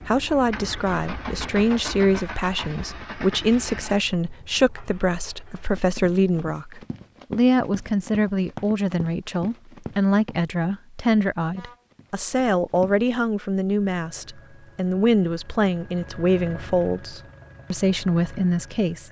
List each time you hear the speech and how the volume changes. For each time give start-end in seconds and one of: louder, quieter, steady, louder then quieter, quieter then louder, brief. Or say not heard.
0.1-19.0 steady.